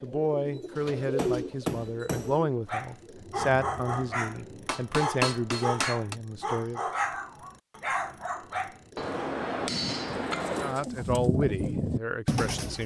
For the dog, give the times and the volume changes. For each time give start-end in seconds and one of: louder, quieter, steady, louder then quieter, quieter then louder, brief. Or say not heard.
2.6-9.2 steady.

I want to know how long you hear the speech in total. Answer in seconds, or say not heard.
9 s.